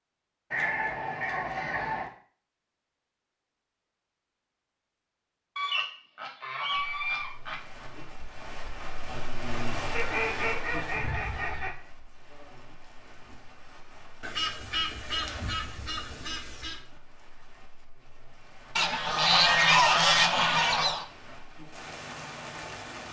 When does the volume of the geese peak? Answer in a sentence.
The volume of the geese peaks at 20 seconds.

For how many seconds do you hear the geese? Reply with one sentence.
The geese can be heard for 10 seconds in total.